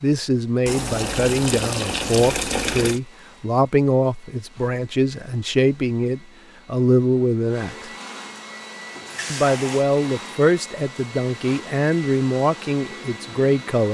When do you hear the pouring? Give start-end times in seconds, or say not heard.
0.7-3.0, 8.9-9.8.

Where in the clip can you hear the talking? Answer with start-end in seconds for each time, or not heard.
0.0-7.9, 9.3-13.9.